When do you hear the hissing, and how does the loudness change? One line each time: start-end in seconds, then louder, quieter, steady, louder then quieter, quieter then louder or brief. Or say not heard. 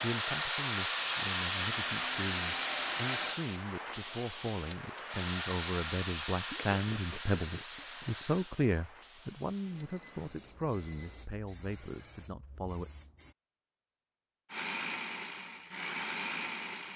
0.0-13.3 quieter.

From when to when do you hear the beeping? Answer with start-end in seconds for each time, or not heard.
9.7-11.2.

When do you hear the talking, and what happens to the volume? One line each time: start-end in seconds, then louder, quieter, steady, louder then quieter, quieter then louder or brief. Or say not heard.
0.0-12.9 louder then quieter.